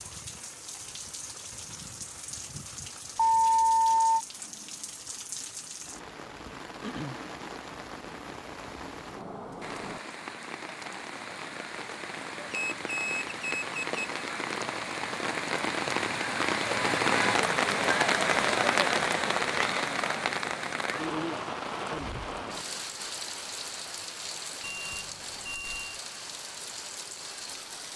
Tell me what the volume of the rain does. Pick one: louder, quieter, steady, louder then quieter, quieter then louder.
louder then quieter.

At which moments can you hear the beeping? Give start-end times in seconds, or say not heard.
3.1-4.2, 12.5-14.0, 24.6-26.0.